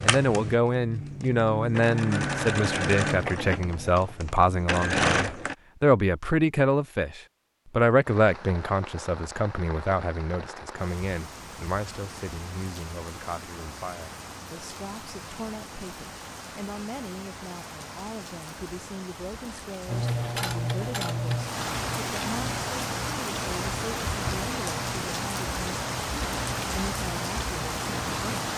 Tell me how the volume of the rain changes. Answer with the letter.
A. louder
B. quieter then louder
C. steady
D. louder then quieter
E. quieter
A.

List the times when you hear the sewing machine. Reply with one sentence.
The sewing machine can be heard from 0.0 to 5.5 s and from 19.9 to 28.5 s.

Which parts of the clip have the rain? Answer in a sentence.
The rain can be heard from 8.1 to 28.5 s.